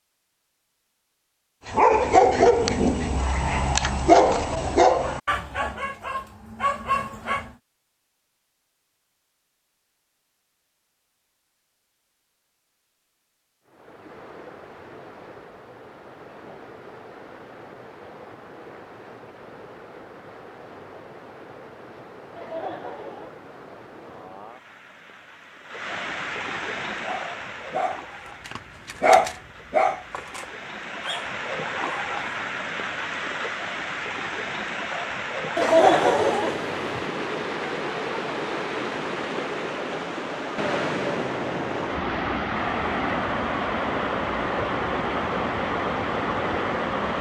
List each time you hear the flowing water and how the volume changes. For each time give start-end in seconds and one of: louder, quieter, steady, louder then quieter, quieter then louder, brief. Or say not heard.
13.7-47.1 louder.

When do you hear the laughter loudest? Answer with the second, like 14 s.
36 s.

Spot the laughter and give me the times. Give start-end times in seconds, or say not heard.
4.5-4.9, 22.4-23.3, 35.5-37.0.